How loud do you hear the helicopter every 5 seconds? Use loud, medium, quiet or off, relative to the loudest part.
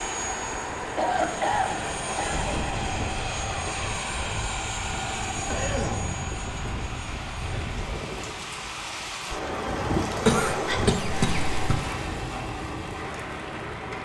loud, loud, off.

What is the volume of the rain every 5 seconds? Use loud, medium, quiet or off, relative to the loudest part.
medium, loud, loud.